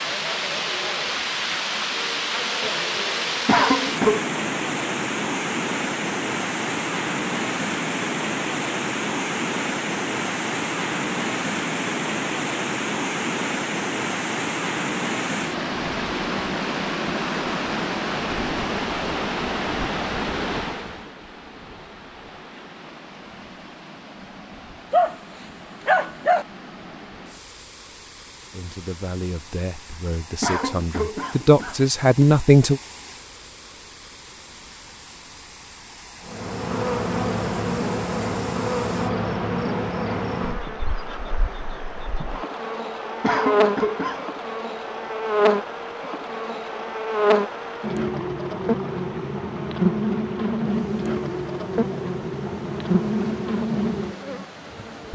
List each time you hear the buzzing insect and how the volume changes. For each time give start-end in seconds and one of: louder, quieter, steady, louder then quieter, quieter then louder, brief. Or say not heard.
36.2-55.1 steady.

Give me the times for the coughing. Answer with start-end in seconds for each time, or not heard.
3.5-4.2, 30.4-32.2, 43.2-44.2.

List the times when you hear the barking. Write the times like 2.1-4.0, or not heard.
24.9-26.4.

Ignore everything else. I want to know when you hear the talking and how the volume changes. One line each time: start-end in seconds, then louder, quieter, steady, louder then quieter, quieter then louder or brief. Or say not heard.
28.5-32.8 louder.